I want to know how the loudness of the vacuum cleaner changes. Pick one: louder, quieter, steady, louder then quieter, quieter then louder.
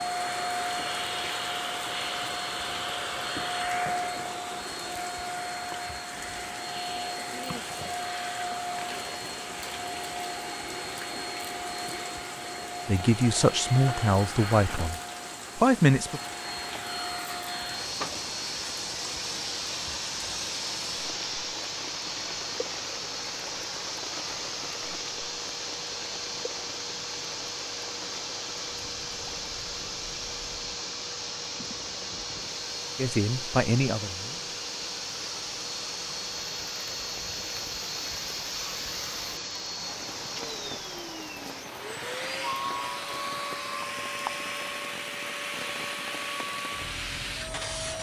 steady.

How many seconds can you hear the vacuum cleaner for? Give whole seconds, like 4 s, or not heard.
48 s.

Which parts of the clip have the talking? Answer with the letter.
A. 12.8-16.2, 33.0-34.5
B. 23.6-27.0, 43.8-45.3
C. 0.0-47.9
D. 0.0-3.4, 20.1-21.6
A.